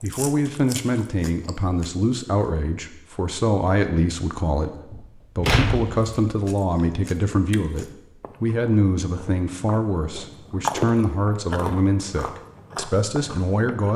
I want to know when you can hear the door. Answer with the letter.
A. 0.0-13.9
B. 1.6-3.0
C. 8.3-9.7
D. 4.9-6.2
D.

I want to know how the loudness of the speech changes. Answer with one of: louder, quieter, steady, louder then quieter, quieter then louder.
steady.